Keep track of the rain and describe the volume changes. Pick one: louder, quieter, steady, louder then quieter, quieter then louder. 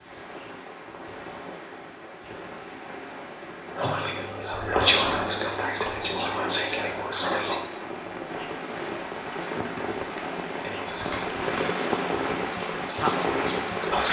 louder.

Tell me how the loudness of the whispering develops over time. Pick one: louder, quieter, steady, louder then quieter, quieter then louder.
quieter then louder.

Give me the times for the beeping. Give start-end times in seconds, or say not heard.
not heard.